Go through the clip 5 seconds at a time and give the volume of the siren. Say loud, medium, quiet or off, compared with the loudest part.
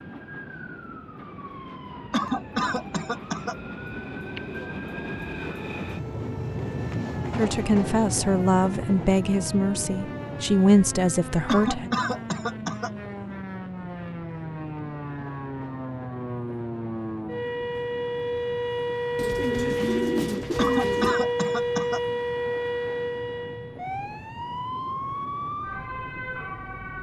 quiet, quiet, medium, loud, loud, medium.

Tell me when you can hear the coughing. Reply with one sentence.
You can hear the coughing from 2.1 to 3.5 s, from 11.4 to 12.9 s and from 20.6 to 22.0 s.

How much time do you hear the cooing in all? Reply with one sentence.
The cooing can be heard for 2 seconds in total.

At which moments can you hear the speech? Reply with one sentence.
You can hear the speech from 7.3 to 11.9 s.